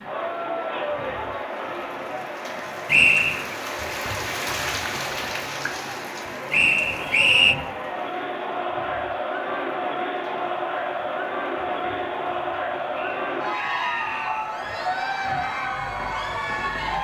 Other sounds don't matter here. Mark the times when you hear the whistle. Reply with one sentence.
You can hear the whistle from 2.9 to 3.5 s, from 6.5 to 7.5 s and from 12.9 to 14.6 s.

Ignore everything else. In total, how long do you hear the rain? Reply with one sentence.
The rain can be heard for 17 seconds in total.